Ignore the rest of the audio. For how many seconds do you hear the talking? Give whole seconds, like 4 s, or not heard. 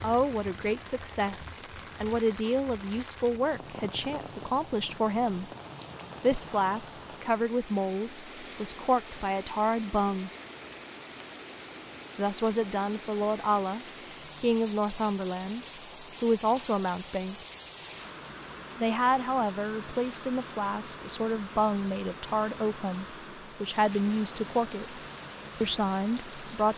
22 s.